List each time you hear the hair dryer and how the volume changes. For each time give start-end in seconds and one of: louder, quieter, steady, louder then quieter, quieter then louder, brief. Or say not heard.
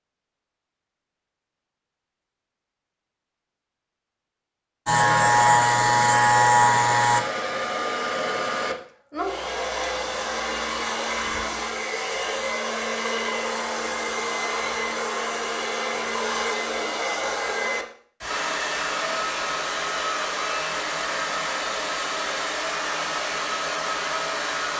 4.8-24.7 steady.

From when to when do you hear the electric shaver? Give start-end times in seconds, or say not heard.
4.8-7.2.